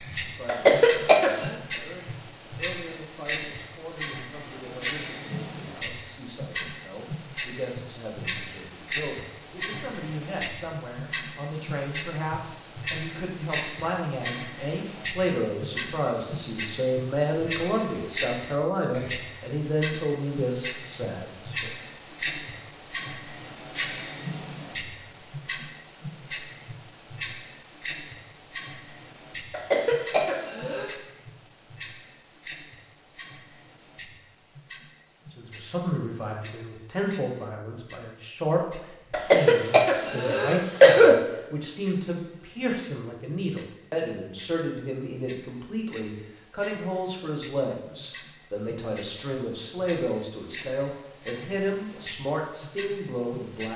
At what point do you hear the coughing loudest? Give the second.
41 s.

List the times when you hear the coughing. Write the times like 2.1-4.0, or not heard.
0.5-1.6, 29.5-30.9, 39.1-41.1.